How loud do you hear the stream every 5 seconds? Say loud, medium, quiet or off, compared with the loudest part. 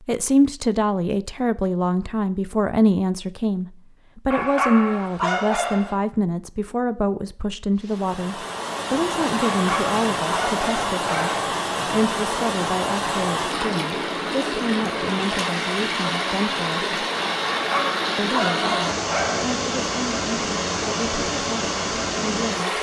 off, loud, loud, loud, loud.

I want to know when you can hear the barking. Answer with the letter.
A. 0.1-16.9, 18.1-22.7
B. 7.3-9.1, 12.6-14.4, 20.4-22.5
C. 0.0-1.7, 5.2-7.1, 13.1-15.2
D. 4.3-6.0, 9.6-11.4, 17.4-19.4
D.